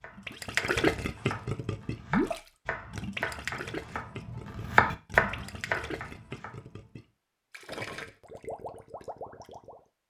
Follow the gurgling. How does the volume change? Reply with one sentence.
The loudness of the gurgling goes down.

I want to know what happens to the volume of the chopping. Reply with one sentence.
The loudness of the chopping goes up.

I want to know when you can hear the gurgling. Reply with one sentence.
The gurgling can be heard from 0.1 to 9.8 s.